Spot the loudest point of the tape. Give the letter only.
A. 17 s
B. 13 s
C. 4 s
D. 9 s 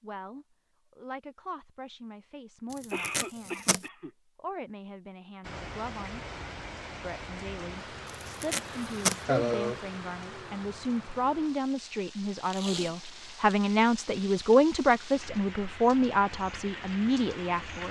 D.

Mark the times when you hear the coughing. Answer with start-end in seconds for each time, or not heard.
2.9-4.1, 9.2-9.8.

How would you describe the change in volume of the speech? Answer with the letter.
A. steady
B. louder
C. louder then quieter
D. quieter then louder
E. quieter
B.